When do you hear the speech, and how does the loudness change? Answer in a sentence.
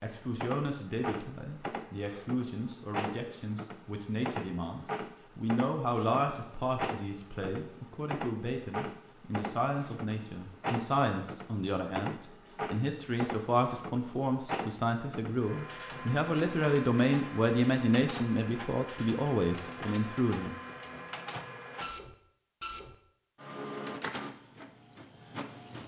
You can hear the speech from 0.0 to 20.6 s, getting louder.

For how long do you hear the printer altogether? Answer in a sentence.
The printer can be heard for 26 seconds in total.